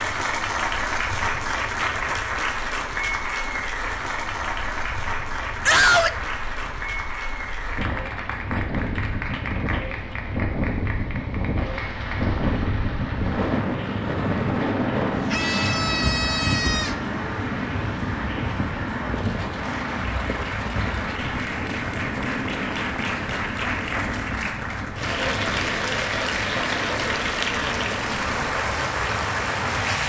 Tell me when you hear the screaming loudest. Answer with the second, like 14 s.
6 s.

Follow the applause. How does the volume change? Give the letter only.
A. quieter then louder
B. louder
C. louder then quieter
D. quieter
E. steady
A.